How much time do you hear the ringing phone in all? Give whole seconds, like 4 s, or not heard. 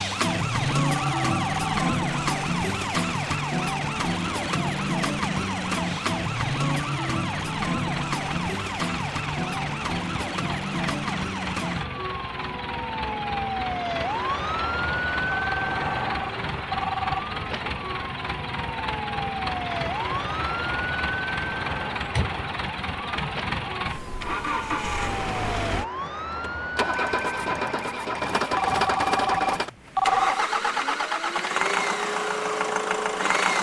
5 s.